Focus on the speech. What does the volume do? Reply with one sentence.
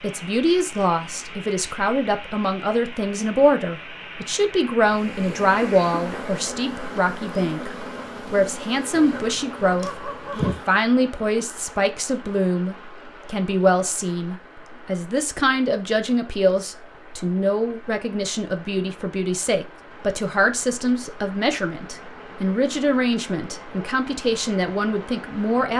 The loudness of the speech stays about the same.